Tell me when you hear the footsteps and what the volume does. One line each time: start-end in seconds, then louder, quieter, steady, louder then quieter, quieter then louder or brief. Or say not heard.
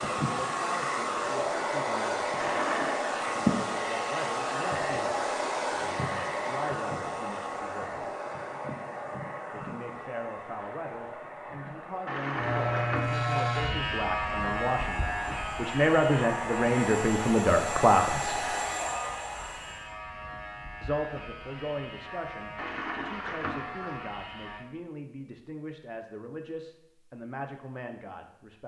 not heard.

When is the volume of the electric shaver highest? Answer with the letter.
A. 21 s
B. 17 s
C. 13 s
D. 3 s
C.